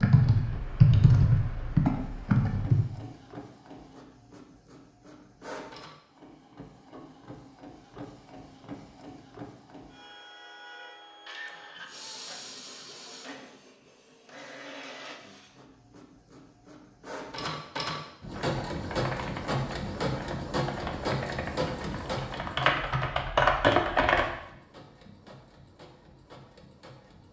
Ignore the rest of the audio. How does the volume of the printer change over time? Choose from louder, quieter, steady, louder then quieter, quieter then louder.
louder then quieter.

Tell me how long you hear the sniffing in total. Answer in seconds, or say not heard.
2 s.